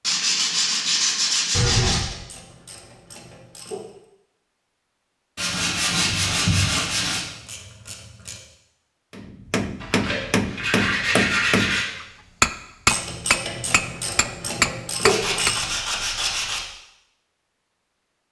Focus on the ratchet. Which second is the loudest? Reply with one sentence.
The volume of the ratchet peaks at 15 seconds.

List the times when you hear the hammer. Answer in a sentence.
The hammer can be heard from 9.1 to 15.6 s.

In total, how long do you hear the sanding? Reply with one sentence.
You can hear the sanding for 8 seconds altogether.